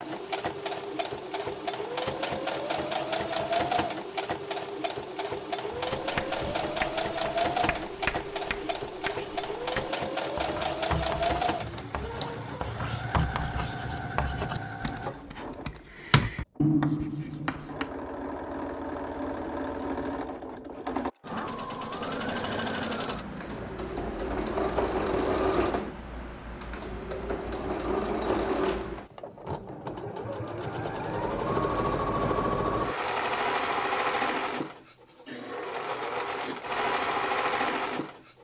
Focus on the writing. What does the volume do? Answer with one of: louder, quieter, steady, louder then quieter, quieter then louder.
louder.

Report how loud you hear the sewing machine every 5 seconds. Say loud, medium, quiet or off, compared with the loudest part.
loud, loud, loud, medium, loud, loud, loud, loud.